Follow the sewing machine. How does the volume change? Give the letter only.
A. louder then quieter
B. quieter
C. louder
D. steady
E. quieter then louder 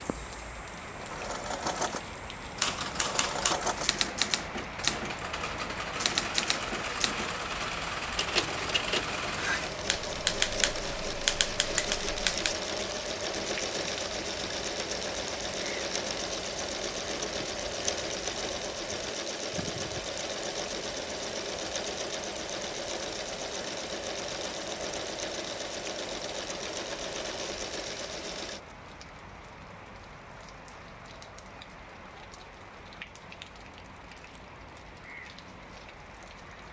D.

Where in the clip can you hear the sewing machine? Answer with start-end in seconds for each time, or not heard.
0.0-28.6.